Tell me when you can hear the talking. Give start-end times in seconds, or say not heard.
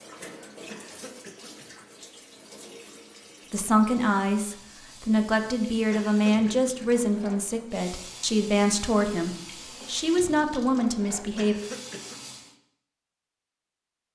3.5-11.6.